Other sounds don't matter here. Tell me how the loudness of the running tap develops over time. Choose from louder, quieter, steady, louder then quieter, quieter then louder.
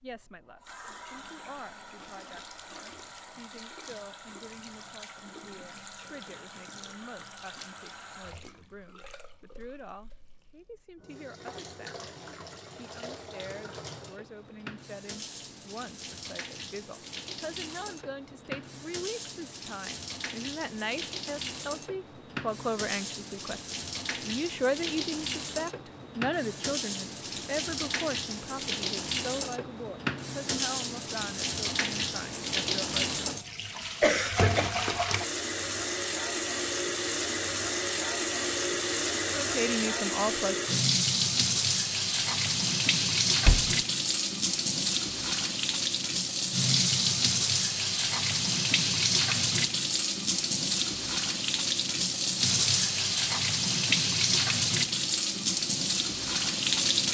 louder.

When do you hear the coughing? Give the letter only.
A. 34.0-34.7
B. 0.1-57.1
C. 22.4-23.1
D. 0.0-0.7
A.